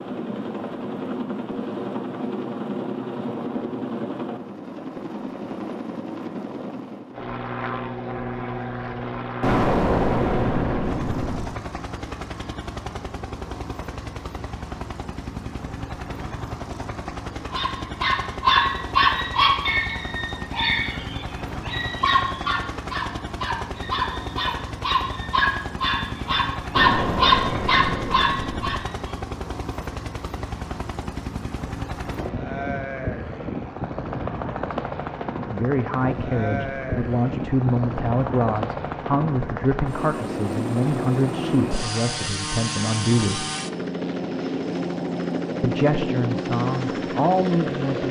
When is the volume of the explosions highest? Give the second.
10 s.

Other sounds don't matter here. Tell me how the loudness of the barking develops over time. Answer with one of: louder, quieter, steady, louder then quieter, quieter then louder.
quieter then louder.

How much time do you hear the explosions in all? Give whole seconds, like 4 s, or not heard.
4 s.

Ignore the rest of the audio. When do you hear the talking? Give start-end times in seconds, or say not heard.
35.5-43.5, 45.6-48.0.